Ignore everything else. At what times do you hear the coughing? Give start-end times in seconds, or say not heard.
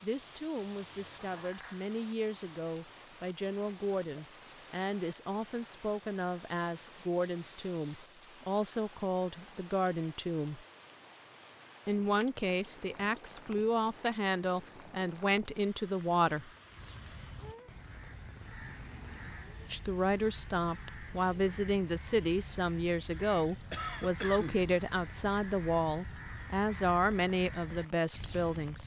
23.7-24.6.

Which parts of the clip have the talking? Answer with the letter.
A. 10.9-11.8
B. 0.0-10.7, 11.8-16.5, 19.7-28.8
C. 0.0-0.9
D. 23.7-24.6
B.